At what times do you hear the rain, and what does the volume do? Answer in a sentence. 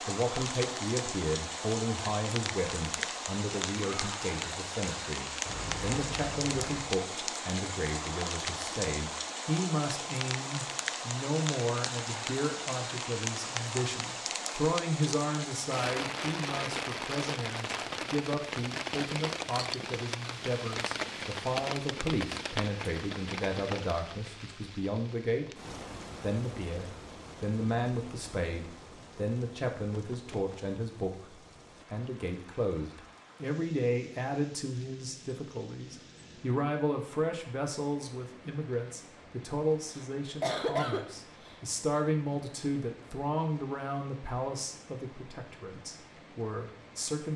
The rain can be heard from 0.0 to 47.3 s, getting quieter.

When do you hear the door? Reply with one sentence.
The door can be heard from 5.5 to 6.8 s.